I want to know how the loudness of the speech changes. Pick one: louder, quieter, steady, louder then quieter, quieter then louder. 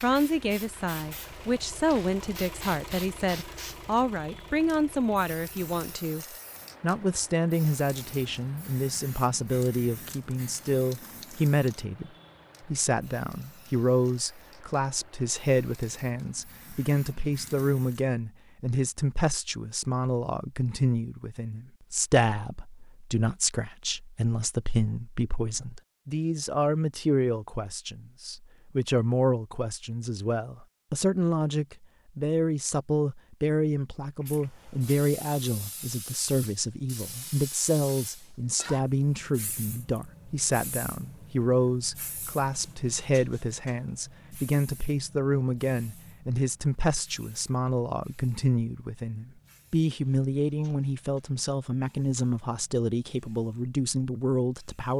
steady.